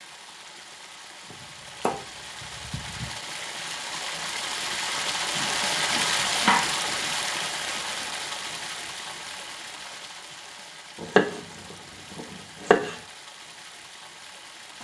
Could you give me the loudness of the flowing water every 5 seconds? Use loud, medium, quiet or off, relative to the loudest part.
medium, loud, quiet.